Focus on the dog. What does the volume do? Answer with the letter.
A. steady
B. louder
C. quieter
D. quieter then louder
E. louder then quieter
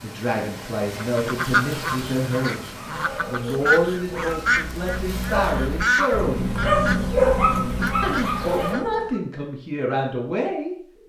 E.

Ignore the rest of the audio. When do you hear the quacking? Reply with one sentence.
The quacking can be heard from 0.9 to 8.8 s.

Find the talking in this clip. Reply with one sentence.
You can hear the talking from 0.0 to 6.6 s and from 8.0 to 10.8 s.